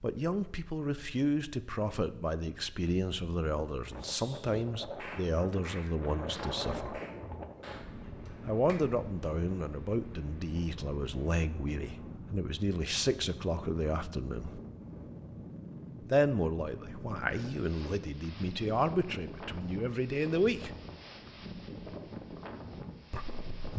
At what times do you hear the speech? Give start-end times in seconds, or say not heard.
0.0-7.0, 8.4-14.6, 16.0-20.8, 23.1-23.7.